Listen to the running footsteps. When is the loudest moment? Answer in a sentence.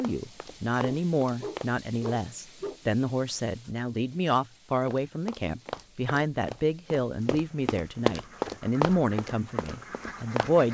The loudest moment of the running footsteps is at 8 seconds.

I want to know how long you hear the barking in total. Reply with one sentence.
The barking can be heard for 2 seconds in total.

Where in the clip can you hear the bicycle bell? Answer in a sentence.
You can't hear the bicycle bell here.